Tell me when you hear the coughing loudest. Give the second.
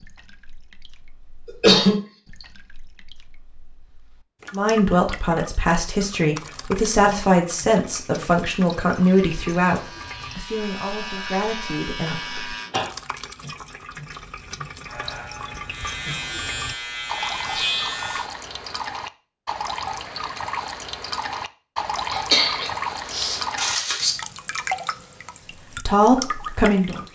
2 s.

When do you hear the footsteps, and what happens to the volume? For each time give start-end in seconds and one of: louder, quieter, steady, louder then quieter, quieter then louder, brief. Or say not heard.
not heard.